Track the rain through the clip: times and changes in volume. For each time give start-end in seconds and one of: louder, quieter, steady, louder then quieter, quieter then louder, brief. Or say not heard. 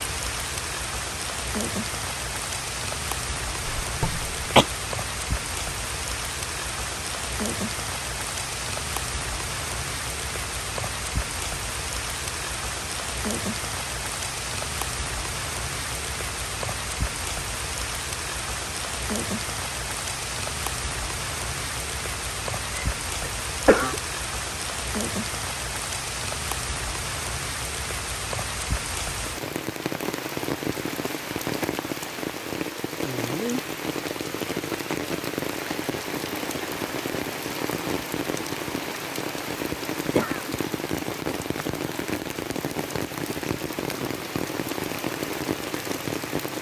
0.0-46.5 steady.